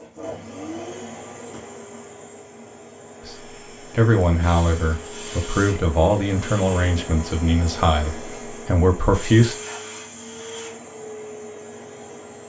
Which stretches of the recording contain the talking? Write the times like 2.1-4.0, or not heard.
3.2-9.6.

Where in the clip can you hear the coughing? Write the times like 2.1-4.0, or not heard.
not heard.